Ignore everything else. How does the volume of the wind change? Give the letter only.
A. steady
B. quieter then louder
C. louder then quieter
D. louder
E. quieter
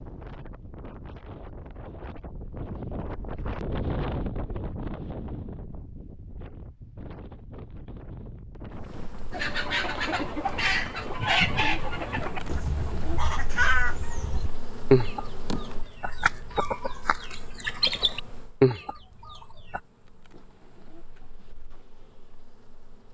C.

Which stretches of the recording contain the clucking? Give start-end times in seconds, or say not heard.
9.3-19.8.